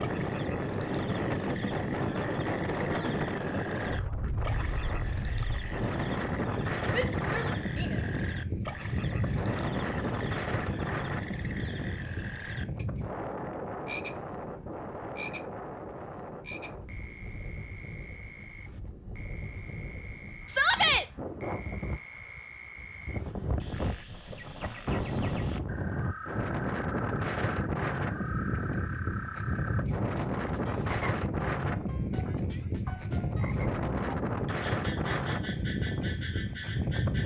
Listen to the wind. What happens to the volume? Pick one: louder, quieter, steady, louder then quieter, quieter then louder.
quieter then louder.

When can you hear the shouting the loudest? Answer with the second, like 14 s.
21 s.